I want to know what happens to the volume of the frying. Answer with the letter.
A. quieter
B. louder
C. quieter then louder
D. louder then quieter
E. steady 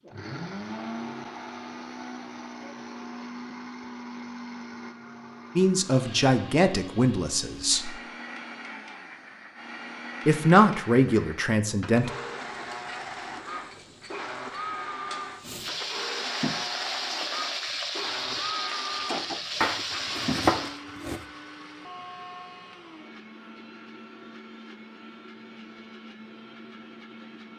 B.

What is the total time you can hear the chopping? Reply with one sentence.
The chopping can be heard for 2 seconds in total.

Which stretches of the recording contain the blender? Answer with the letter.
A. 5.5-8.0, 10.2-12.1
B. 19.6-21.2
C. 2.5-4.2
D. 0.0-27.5
D.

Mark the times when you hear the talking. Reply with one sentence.
You can hear the talking from 5.5 to 8.0 s and from 10.2 to 12.1 s.